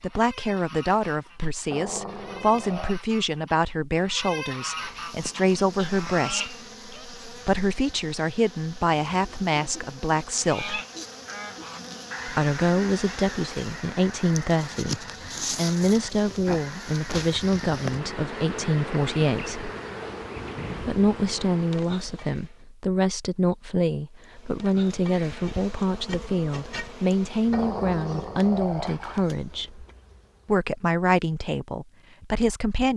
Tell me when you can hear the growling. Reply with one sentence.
You can hear the growling from 1.7 to 3.0 s and from 27.5 to 29.2 s.